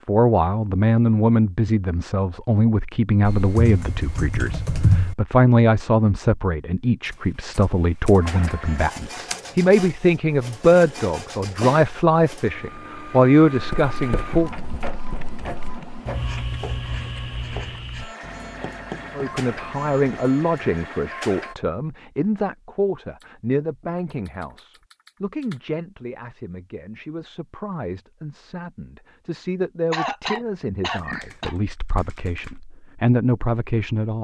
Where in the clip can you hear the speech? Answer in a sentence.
The speech can be heard from 0.1 to 14.6 s and from 19.1 to 34.2 s.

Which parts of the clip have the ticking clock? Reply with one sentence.
You can't hear the ticking clock here.